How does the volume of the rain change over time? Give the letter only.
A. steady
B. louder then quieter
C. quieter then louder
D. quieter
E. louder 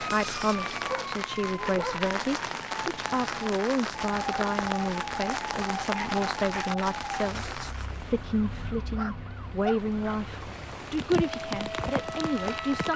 C.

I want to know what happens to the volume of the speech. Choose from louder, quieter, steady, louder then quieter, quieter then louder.
steady.